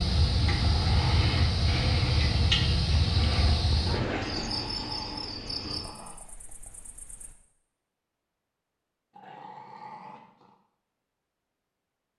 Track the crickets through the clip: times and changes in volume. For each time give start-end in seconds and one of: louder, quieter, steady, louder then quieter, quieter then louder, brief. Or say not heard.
0.0-7.3 quieter.